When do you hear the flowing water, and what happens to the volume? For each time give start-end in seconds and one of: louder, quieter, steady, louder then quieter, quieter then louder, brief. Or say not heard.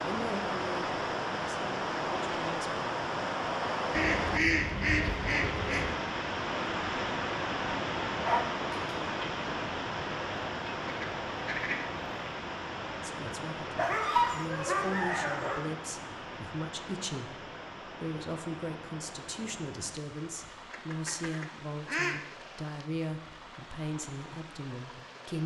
0.0-25.4 quieter.